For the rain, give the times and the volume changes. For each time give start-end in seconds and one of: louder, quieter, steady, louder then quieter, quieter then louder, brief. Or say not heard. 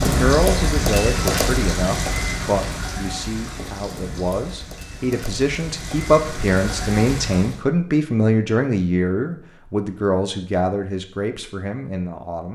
0.0-7.6 quieter then louder.